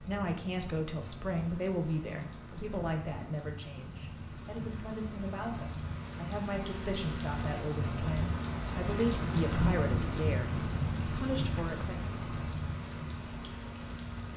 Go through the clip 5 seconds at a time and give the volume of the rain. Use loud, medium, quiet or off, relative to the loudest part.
medium, loud, loud.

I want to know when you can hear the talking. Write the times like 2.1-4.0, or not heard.
0.0-12.1.